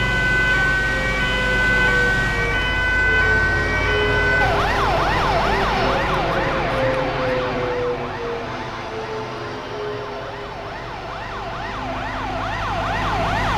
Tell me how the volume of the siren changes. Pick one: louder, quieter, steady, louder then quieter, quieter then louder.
quieter then louder.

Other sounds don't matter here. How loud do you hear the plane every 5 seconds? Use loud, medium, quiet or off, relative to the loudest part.
loud, loud, medium.